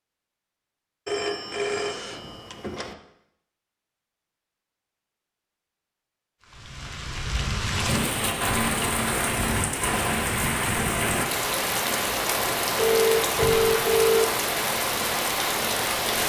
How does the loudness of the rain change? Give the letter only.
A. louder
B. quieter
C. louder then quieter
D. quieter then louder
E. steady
E.